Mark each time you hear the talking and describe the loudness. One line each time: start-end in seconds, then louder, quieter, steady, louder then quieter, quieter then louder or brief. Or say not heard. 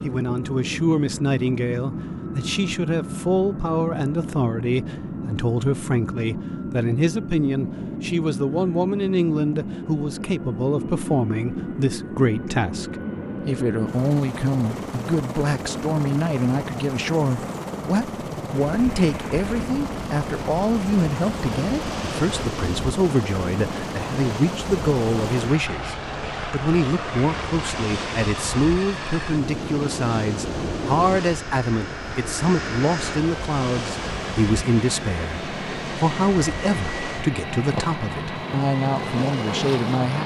0.0-40.2 steady.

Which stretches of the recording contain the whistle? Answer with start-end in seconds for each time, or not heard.
not heard.